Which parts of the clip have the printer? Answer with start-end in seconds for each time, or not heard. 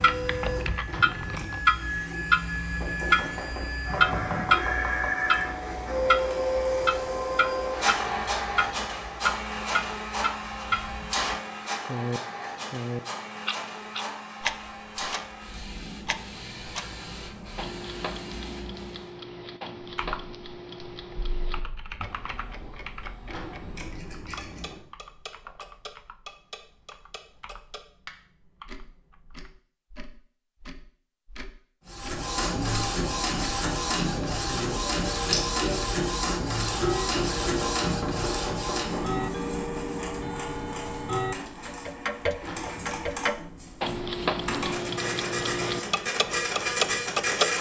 0.0-19.1, 31.9-47.5.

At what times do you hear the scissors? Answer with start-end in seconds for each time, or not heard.
0.8-1.6, 23.2-24.8, 42.4-43.0.